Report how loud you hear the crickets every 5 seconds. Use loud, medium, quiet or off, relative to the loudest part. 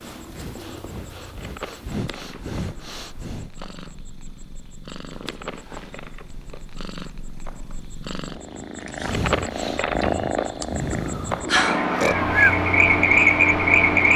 quiet, quiet, loud.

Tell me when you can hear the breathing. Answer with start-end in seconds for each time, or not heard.
0.0-3.5, 8.9-12.6.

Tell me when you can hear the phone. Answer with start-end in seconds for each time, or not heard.
11.4-11.8.